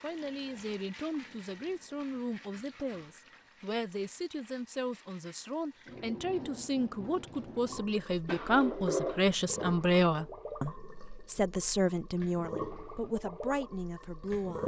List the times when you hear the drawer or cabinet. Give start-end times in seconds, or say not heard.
8.2-9.7.